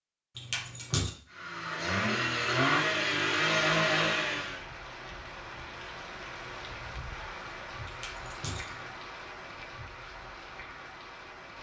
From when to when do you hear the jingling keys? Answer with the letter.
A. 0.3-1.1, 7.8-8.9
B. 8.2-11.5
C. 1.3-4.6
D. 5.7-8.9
A.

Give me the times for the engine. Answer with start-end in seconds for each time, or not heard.
1.3-4.6.